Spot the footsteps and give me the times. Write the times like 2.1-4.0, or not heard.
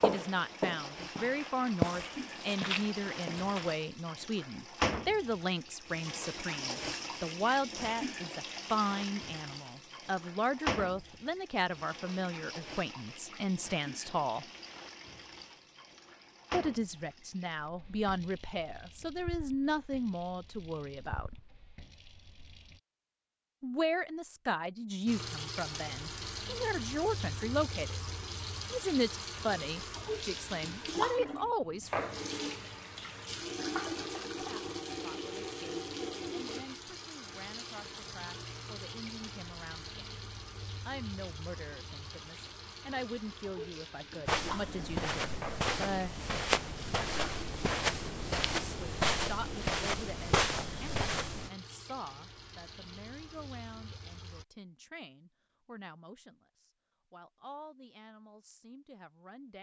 0.0-3.8, 44.2-51.5.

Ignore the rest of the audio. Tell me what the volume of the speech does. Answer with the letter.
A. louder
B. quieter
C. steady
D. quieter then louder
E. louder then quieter
B.